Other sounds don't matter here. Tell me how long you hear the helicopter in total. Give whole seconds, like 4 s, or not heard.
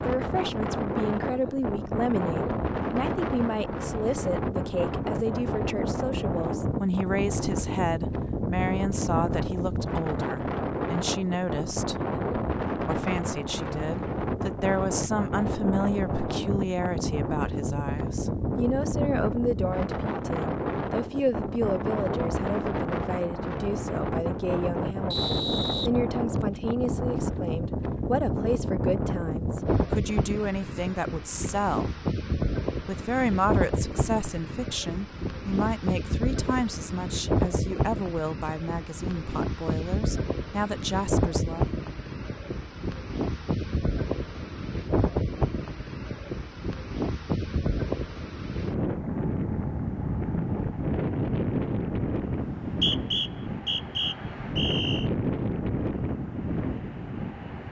not heard.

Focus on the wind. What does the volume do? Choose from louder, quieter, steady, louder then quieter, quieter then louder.
steady.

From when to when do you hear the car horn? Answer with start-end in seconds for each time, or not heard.
not heard.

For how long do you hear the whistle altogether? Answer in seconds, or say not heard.
4 s.